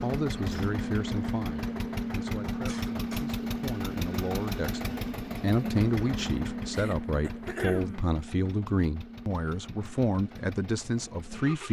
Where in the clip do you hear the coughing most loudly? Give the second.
8 s.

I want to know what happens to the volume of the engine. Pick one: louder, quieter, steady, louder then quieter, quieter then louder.
quieter.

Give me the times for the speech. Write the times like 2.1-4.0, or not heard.
0.0-11.6.